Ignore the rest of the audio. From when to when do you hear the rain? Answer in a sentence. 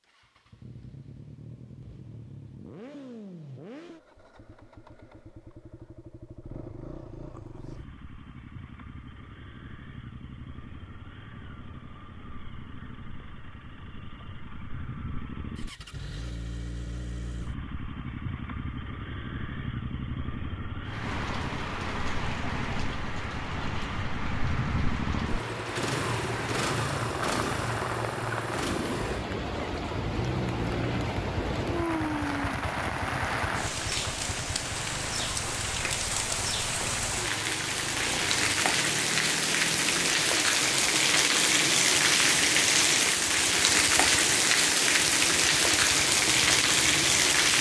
The rain can be heard from 20.9 to 47.5 s.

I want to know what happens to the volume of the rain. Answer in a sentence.
The loudness of the rain goes up.